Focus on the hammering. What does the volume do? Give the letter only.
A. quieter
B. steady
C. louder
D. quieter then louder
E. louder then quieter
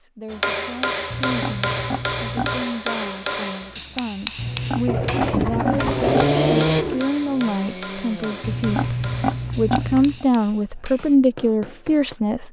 A.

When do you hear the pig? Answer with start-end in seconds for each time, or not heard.
1.1-2.6, 4.3-6.4, 8.4-10.2.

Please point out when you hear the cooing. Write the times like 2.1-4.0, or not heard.
4.8-7.0.